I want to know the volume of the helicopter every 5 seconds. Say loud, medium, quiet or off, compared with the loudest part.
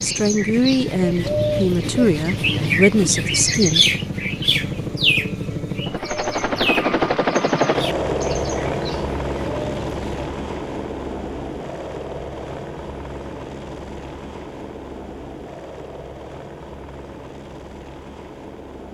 medium, loud, medium, quiet.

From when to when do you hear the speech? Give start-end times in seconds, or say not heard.
0.0-3.9.